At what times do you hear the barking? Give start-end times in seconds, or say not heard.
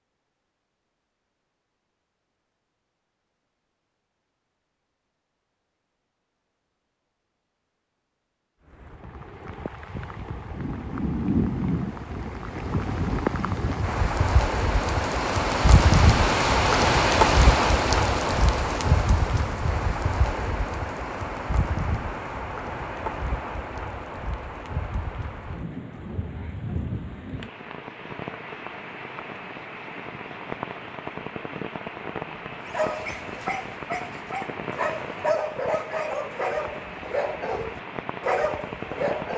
32.6-39.3.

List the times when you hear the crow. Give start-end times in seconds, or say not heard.
not heard.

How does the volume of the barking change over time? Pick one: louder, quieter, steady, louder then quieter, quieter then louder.
louder.